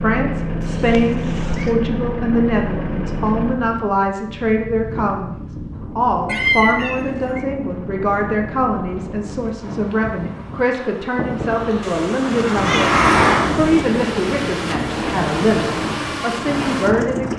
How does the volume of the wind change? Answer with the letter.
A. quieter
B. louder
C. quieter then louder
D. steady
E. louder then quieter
E.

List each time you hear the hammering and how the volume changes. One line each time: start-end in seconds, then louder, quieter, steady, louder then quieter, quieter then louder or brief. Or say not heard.
not heard.